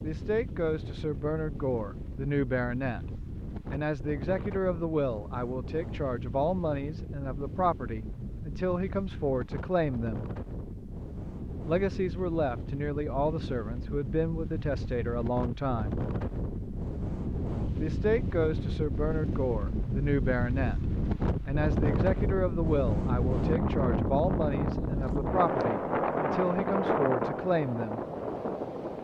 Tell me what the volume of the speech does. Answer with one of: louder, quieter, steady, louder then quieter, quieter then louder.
steady.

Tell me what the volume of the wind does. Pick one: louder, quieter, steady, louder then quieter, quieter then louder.
louder.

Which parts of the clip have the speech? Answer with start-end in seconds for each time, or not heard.
0.0-3.0, 3.7-10.2, 11.7-16.1, 17.8-20.8, 21.4-28.0.